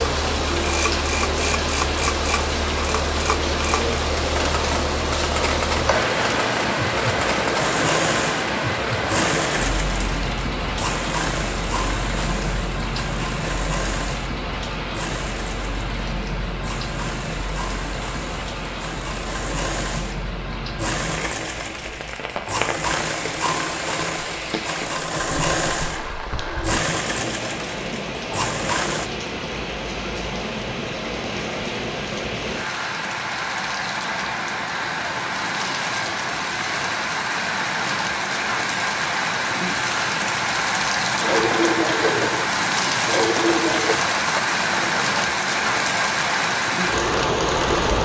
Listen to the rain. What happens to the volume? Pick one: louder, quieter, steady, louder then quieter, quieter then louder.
quieter then louder.